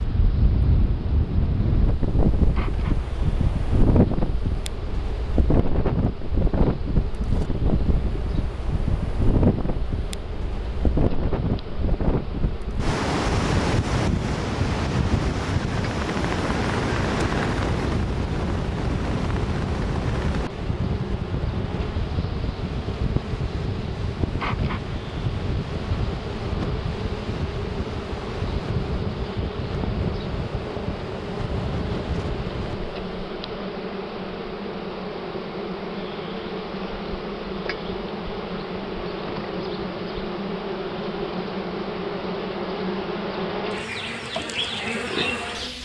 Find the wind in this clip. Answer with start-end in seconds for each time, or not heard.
0.0-33.1.